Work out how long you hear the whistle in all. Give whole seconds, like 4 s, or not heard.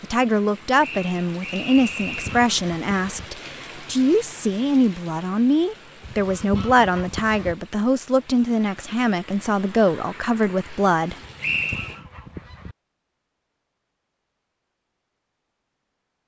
2 s.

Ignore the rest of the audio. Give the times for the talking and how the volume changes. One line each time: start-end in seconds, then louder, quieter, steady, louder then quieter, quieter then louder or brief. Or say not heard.
0.0-11.2 steady.